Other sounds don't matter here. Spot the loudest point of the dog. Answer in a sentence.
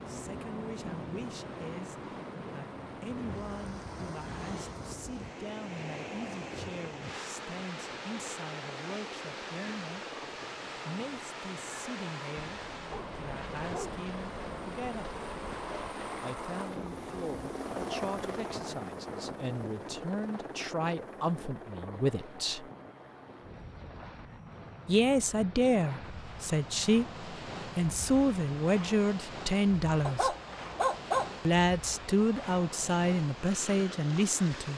The volume of the dog peaks at 31 seconds.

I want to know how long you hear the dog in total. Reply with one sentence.
The dog can be heard for 3 seconds in total.